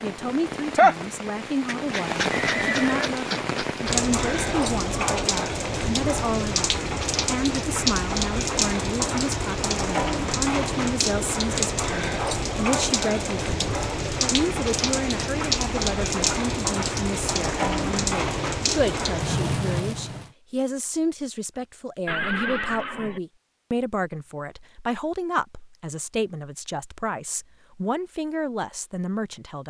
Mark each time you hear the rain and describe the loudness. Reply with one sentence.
You can hear the rain from 0.0 to 20.3 s, at a steady volume.